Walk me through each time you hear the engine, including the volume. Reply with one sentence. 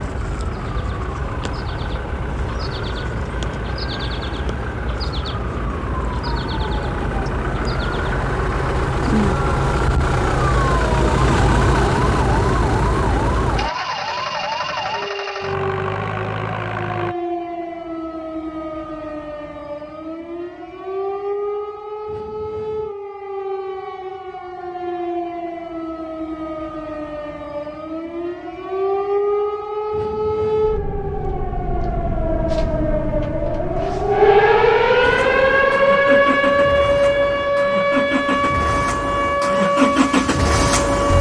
The engine can be heard from 0.0 to 17.1 s, getting louder then quieter; and from 35.0 to 41.1 s, getting louder.